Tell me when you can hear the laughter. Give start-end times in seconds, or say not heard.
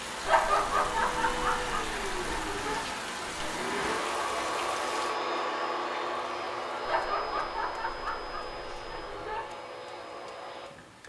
0.2-2.9, 6.8-9.4.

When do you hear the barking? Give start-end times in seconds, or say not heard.
not heard.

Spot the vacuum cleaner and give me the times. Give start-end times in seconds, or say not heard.
0.0-11.0.